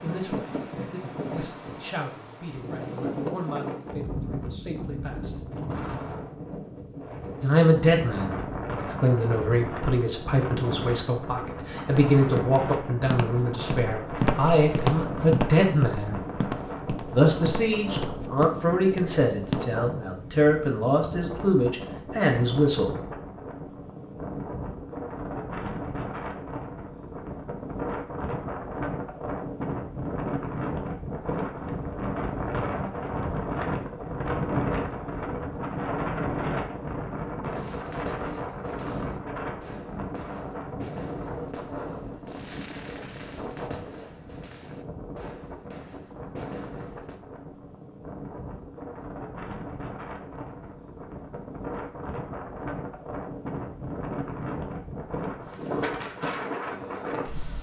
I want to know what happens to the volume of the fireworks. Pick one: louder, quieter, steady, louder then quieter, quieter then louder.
steady.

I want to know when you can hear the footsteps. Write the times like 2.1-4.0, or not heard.
11.9-19.6.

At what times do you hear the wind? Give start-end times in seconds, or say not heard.
0.0-57.5.